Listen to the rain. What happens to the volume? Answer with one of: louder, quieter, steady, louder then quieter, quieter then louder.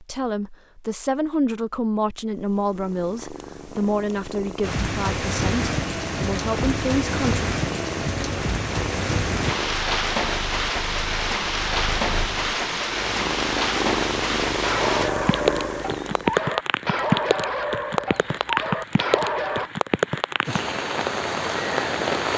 steady.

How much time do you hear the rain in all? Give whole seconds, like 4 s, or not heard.
18 s.